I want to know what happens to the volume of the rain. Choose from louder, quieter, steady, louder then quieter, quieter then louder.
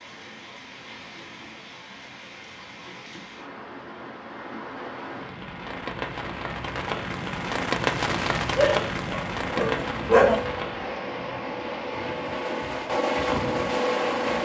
louder then quieter.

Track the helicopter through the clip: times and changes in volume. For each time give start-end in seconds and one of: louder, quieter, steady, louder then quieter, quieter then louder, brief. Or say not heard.
9.7-14.3 louder.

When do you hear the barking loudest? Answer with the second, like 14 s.
10 s.